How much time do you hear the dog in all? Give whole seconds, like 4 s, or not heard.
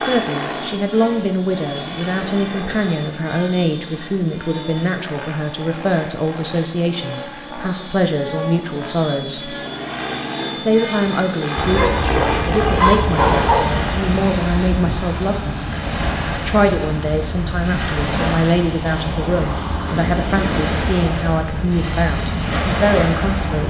2 s.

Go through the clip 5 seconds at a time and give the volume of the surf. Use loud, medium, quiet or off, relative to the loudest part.
off, off, loud, loud, loud.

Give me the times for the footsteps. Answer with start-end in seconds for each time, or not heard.
not heard.